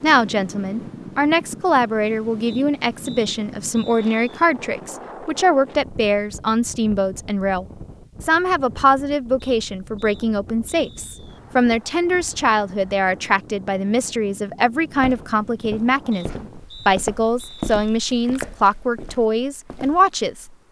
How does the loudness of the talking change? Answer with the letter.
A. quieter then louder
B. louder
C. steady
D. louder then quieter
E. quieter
C.